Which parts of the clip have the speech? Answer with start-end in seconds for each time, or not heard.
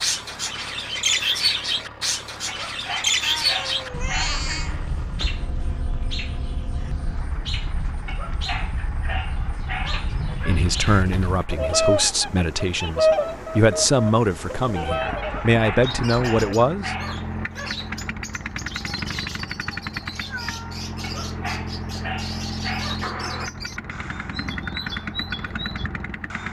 10.4-16.9.